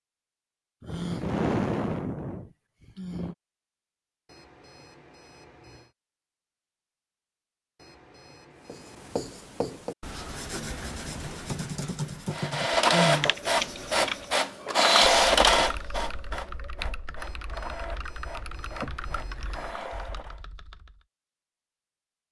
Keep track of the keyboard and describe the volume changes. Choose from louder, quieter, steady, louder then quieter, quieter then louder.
quieter.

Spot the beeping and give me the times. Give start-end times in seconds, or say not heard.
4.2-6.0, 7.8-9.2, 17.1-19.8.